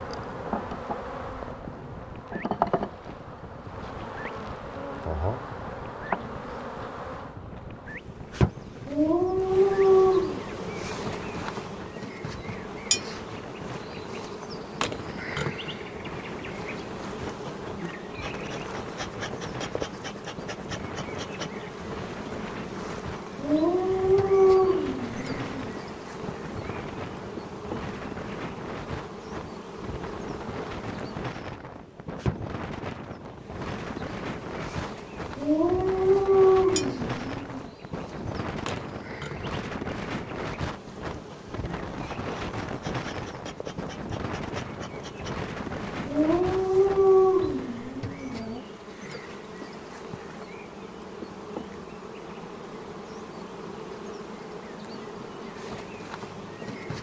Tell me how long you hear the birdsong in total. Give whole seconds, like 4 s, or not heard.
not heard.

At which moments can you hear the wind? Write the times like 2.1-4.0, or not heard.
0.0-47.8.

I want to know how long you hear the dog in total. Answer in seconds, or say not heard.
9 s.